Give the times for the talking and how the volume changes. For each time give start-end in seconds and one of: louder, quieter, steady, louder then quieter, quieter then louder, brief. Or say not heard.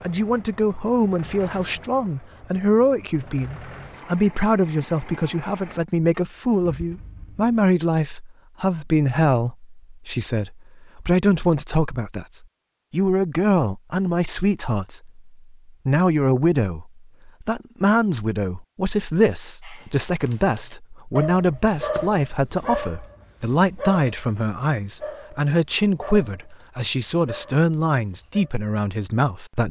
0.0-29.6 steady.